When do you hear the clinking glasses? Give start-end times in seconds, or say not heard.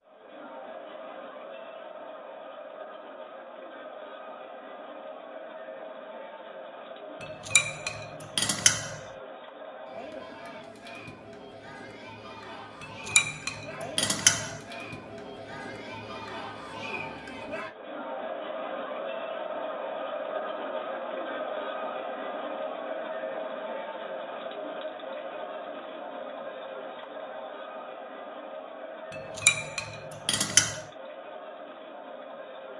7.2-9.0, 12.8-14.6, 29.1-30.8.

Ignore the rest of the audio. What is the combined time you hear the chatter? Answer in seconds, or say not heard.
33 s.